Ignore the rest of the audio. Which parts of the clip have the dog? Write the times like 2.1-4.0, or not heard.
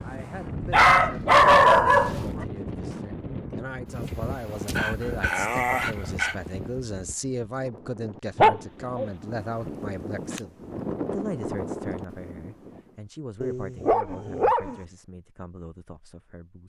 0.7-2.5, 4.7-6.3, 8.3-9.1, 13.4-14.8.